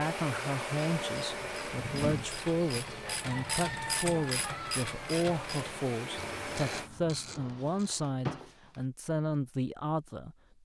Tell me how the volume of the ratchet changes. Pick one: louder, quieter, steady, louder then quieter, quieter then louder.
louder then quieter.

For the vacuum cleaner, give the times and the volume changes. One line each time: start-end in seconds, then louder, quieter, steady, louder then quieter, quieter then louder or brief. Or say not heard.
0.0-6.9 quieter then louder.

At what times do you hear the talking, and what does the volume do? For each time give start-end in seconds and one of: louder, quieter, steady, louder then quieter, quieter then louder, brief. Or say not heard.
0.0-10.3 steady.